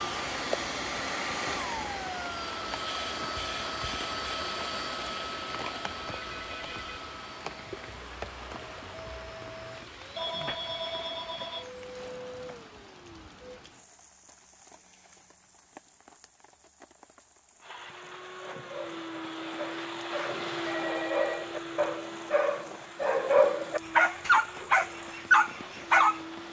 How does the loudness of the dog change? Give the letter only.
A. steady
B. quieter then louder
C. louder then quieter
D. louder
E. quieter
D.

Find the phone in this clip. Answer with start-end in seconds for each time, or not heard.
6.0-7.0, 10.2-11.7, 20.6-21.6.